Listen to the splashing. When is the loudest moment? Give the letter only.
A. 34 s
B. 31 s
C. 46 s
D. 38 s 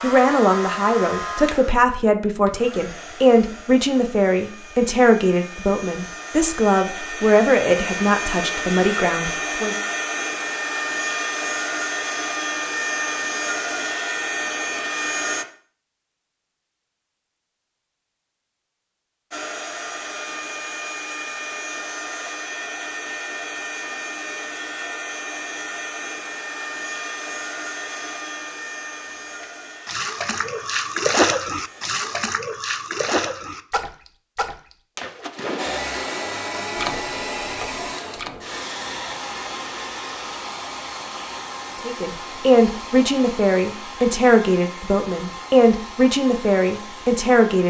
B.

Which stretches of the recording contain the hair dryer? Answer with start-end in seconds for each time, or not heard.
0.0-15.4, 19.3-32.3, 35.5-47.6.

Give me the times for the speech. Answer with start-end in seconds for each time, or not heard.
0.0-9.8, 41.9-47.6.